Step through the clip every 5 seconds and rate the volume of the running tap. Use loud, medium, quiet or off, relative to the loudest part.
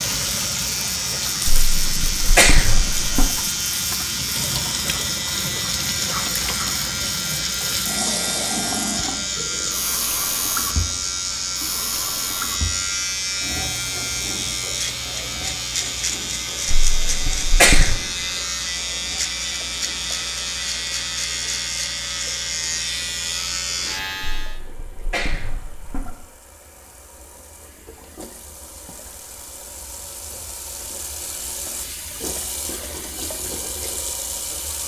loud, loud, medium, quiet, quiet, quiet, loud.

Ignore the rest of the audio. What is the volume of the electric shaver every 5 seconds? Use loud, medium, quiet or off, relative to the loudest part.
loud, loud, loud, loud, loud, off, off.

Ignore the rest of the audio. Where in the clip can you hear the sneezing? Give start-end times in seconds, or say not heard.
1.4-3.3, 16.6-18.0, 24.4-26.1.